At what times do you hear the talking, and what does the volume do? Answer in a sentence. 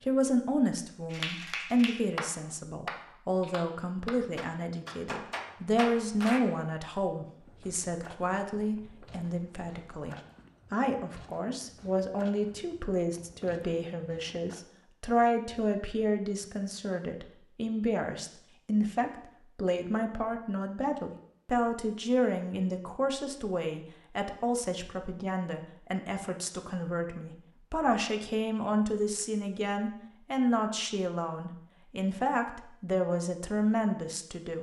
You can hear the talking from 0.0 to 34.5 s, at a steady volume.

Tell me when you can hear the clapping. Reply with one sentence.
You can hear the clapping from 1.1 to 6.4 s.